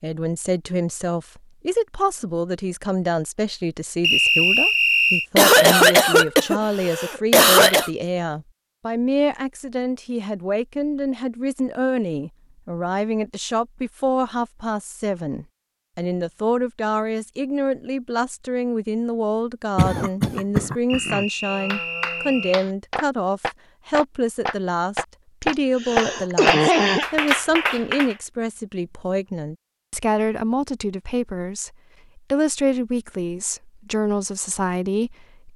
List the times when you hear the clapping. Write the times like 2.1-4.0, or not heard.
21.4-28.1.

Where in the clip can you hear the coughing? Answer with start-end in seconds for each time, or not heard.
5.3-7.9, 19.8-21.2, 25.8-27.1.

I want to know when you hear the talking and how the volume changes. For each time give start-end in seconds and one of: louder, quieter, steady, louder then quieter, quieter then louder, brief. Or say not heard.
0.0-35.5 steady.